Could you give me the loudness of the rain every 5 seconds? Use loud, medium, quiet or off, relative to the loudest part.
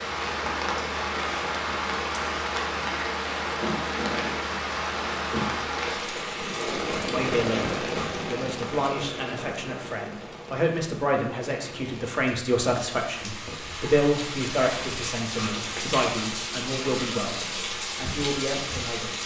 loud, loud, medium, loud.